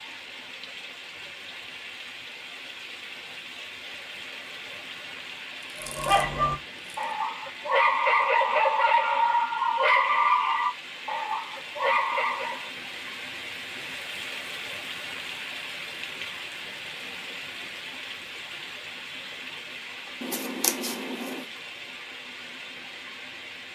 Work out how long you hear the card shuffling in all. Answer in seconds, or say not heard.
3 s.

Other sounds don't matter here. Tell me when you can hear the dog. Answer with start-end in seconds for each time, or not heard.
5.8-12.7.